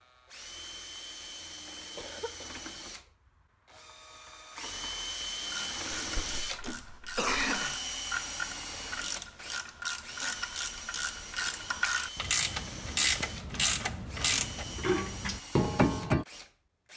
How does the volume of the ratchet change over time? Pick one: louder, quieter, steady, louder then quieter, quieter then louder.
louder.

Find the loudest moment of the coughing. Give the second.
7 s.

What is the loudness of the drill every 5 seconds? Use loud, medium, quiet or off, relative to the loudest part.
medium, loud, medium, medium.